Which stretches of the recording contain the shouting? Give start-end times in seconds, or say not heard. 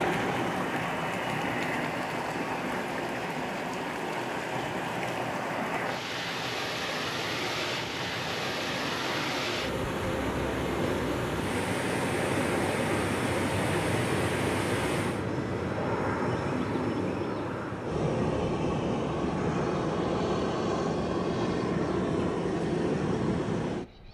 not heard.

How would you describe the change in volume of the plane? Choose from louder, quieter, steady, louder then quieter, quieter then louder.
louder.